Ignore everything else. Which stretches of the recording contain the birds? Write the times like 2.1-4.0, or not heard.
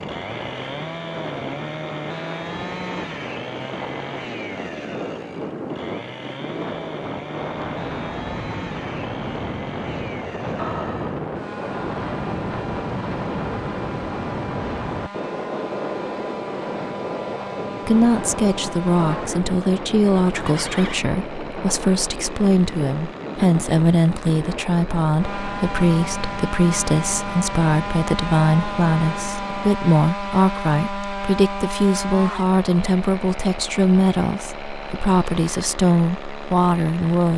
not heard.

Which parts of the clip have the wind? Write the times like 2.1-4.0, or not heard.
0.0-29.7.